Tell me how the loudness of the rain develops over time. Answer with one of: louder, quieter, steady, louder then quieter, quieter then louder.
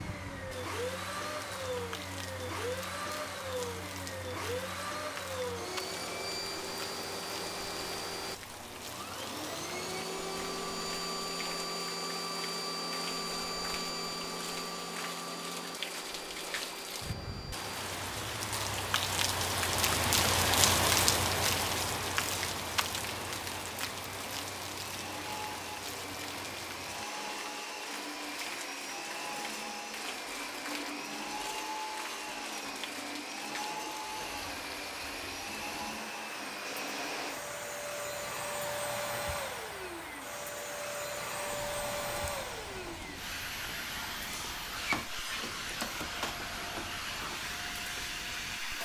louder then quieter.